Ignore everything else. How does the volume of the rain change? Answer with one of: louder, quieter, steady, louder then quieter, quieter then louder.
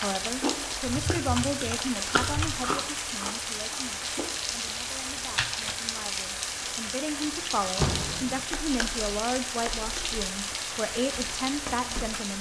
steady.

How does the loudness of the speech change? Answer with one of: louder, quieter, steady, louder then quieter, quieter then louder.
quieter then louder.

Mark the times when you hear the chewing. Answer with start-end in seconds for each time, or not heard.
0.0-4.8.